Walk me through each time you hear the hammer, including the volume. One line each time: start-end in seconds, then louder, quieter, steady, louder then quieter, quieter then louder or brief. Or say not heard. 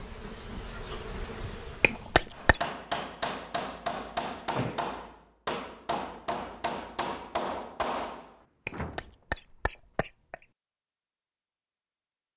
2.3-8.8 steady.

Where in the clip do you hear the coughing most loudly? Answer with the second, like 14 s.
2 s.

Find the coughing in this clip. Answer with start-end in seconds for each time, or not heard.
1.8-2.6, 8.7-10.4.